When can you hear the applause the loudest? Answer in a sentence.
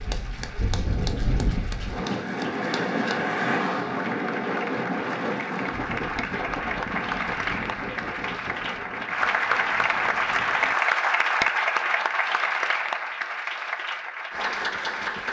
The loudest moment of the applause is at 11 seconds.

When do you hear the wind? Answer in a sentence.
The wind can be heard from 0.0 to 10.8 s.